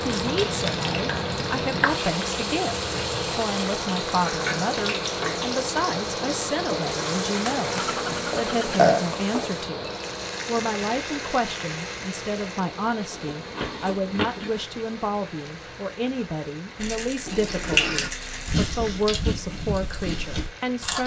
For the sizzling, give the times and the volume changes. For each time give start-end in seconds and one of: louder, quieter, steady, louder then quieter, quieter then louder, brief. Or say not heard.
0.0-21.0 quieter.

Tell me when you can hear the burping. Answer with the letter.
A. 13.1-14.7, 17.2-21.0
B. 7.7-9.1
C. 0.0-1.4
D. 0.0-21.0
B.